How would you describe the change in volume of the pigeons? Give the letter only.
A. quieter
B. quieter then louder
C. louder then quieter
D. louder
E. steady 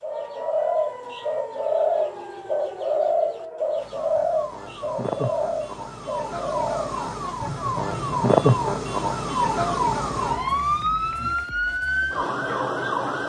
A.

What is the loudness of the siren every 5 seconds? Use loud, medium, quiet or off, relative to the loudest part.
quiet, loud, loud.